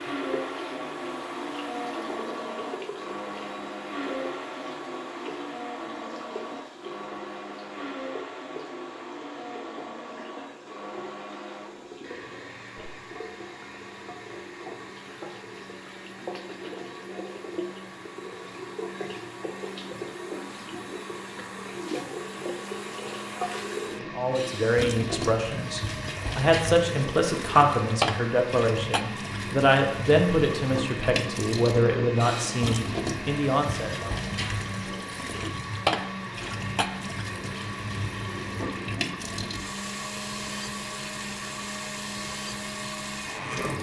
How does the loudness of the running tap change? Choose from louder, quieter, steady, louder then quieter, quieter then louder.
louder.